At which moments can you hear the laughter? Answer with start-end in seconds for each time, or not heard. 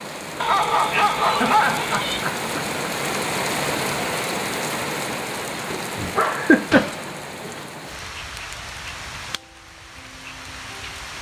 1.3-2.7, 6.3-6.9.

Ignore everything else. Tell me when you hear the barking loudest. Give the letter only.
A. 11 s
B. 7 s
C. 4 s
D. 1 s
D.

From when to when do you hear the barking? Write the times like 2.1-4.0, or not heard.
0.4-2.2, 5.7-7.5.